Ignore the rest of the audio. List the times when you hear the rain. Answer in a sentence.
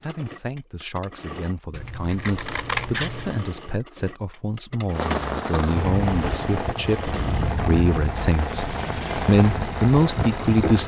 The rain can be heard from 4.9 to 10.8 s.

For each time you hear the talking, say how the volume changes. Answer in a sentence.
The talking can be heard from 0.0 to 10.8 s, getting louder.